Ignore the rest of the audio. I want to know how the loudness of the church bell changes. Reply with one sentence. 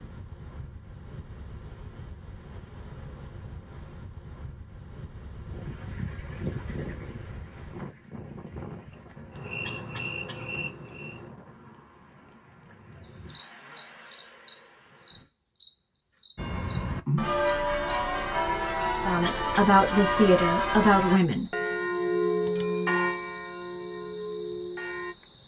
The volume of the church bell goes down.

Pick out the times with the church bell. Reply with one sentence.
You can hear the church bell from 16.4 to 25.1 s.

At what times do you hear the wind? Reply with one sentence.
You can hear the wind from 0.0 to 15.2 s.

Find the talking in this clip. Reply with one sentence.
The talking can be heard from 18.9 to 21.5 s.